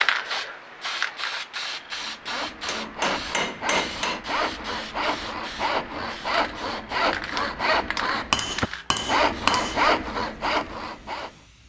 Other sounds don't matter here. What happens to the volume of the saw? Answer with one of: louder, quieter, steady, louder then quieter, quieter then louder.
louder.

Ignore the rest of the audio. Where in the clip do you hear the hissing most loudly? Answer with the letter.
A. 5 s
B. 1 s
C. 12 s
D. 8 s
B.